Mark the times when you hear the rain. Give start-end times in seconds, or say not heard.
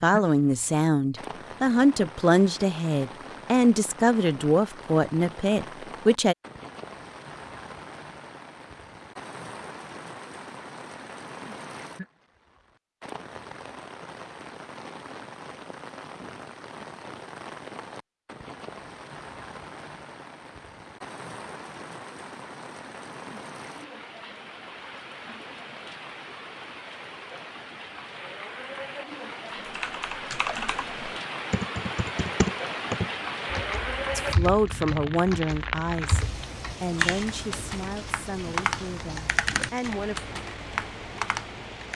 0.0-41.9.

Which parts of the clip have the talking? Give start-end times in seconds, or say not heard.
0.0-6.3, 34.1-40.1.